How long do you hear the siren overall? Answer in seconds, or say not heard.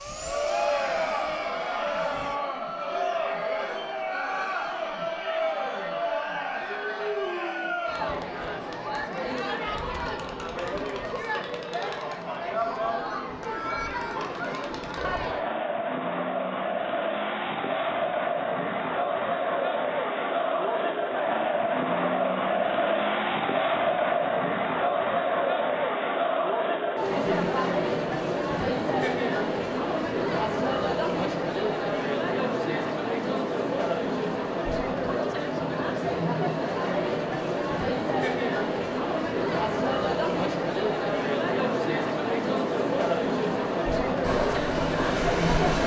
not heard.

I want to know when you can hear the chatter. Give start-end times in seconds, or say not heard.
0.1-45.8.